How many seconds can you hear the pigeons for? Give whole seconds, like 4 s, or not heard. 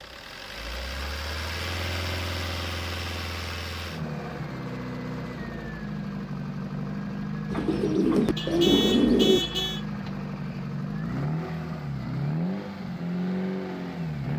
2 s.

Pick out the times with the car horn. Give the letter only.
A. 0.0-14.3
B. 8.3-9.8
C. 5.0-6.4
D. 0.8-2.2
B.